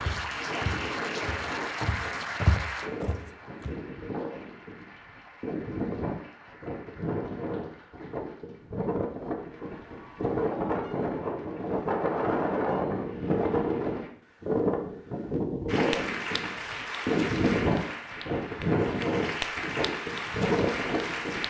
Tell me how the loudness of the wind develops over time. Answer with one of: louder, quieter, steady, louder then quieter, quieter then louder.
louder.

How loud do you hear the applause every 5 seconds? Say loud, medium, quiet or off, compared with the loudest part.
loud, quiet, quiet, loud, loud.